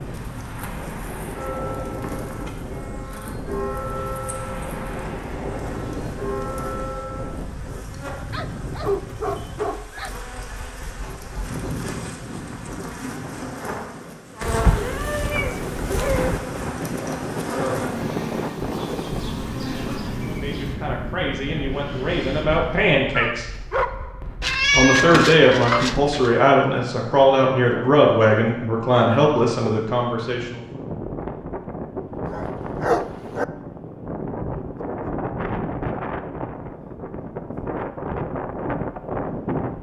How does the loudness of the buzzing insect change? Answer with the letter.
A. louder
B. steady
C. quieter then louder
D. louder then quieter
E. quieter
A.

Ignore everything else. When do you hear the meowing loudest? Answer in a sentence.
The volume of the meowing peaks at 25 seconds.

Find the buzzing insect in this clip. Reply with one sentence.
You can hear the buzzing insect from 0.0 to 20.8 s.